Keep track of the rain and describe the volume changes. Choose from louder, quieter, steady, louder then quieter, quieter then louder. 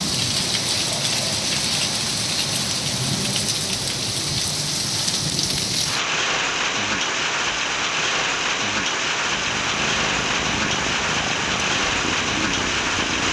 steady.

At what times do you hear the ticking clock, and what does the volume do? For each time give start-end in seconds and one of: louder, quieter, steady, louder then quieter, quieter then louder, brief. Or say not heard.
not heard.